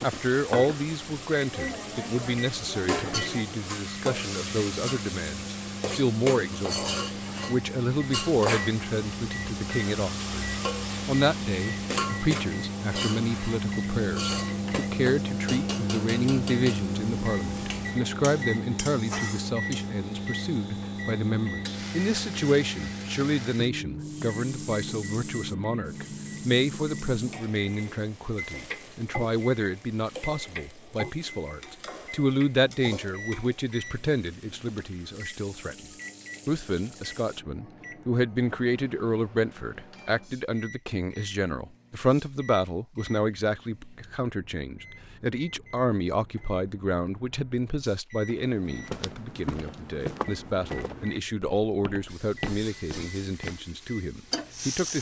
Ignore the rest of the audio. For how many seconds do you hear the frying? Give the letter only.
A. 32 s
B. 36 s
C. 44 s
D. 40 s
D.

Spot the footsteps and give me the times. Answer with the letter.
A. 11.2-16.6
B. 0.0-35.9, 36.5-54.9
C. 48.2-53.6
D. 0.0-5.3
C.